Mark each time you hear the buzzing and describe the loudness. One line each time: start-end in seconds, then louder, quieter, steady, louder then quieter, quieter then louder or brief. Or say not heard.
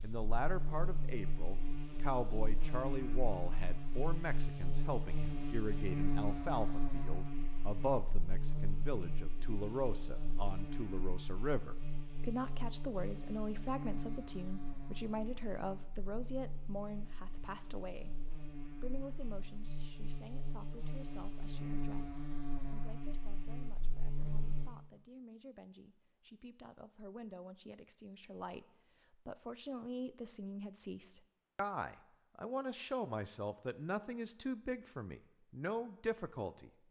0.0-24.7 quieter then louder.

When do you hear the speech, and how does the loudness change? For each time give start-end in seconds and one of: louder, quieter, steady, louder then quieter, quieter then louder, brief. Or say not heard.
0.0-36.8 quieter then louder.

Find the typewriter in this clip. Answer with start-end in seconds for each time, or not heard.
not heard.